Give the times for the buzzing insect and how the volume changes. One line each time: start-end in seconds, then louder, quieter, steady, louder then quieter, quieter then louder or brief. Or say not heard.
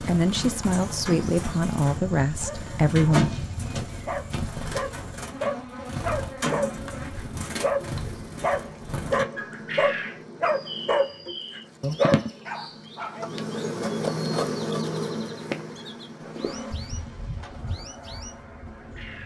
0.0-19.2 louder then quieter.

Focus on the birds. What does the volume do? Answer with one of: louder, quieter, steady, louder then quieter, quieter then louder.
quieter.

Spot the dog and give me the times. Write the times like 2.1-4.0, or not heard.
1.9-13.2.